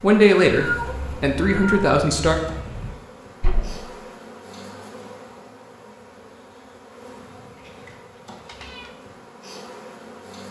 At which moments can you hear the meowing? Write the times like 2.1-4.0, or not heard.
0.5-3.0, 8.3-8.9.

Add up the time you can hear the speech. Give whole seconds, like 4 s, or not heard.
2 s.